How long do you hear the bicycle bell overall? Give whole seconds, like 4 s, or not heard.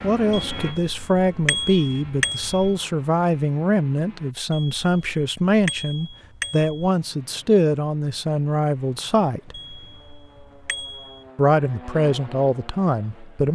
7 s.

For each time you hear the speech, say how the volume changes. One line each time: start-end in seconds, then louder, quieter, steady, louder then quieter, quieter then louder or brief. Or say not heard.
0.0-9.6 steady
11.3-13.4 brief.